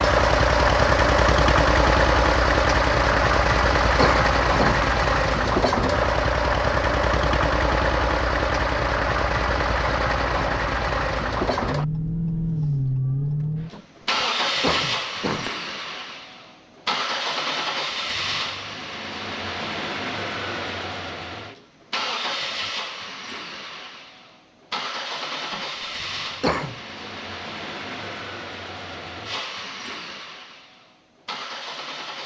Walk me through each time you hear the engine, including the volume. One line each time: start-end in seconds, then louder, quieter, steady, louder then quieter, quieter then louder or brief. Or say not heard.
0.0-32.2 quieter.